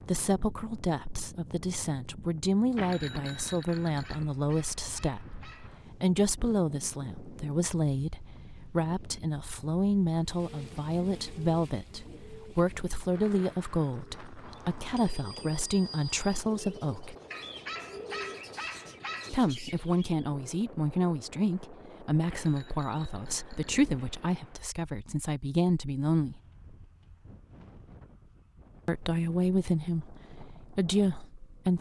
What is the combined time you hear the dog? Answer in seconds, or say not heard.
4 s.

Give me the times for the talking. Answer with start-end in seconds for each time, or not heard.
0.1-17.1, 19.3-26.4, 28.9-31.7.